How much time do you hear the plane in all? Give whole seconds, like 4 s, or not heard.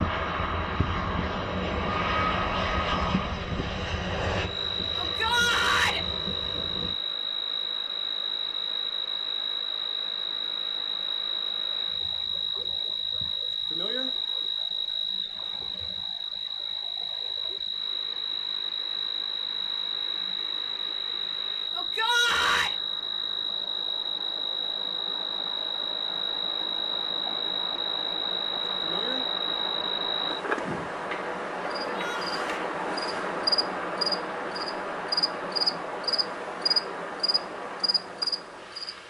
7 s.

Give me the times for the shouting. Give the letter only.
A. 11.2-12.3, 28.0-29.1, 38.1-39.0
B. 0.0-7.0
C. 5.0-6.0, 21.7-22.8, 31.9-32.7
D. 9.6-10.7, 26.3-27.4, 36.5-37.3
C.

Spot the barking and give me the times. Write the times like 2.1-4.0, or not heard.
not heard.